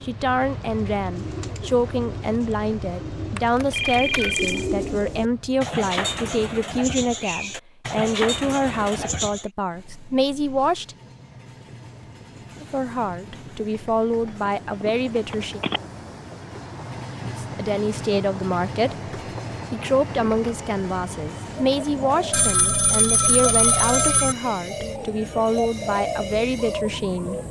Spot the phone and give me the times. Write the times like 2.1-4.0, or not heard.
3.4-4.7, 14.4-15.8, 22.3-24.4.